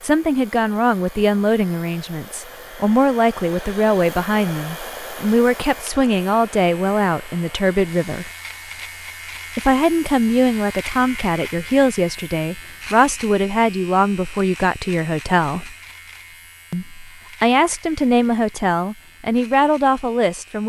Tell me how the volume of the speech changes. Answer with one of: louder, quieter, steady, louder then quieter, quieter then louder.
steady.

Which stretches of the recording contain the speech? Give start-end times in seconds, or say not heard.
0.0-8.3, 9.6-15.7, 16.7-20.6.